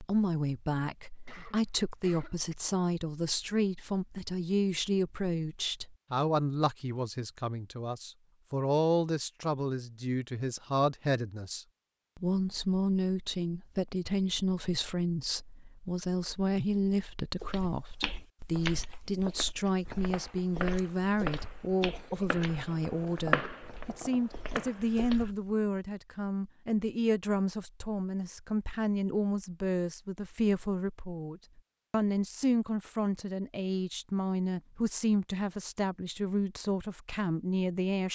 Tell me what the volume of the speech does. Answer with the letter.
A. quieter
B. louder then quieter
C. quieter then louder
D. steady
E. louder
D.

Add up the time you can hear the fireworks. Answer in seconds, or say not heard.
5 s.